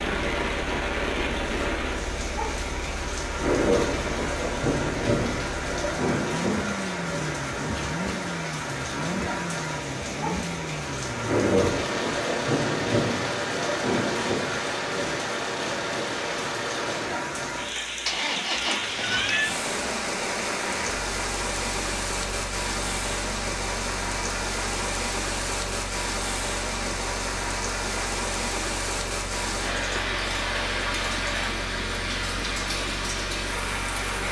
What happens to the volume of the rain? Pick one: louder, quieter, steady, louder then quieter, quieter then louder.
steady.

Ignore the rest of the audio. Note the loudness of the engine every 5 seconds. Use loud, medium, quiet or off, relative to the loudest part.
medium, loud, loud, loud, medium, medium, medium.